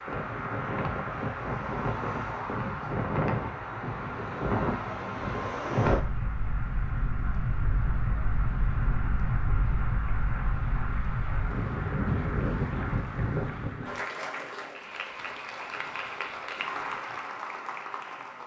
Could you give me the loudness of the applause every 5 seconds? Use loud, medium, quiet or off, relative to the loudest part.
loud, medium, loud, loud.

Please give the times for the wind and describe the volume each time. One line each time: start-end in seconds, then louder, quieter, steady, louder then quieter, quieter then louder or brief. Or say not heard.
0.0-14.0 steady.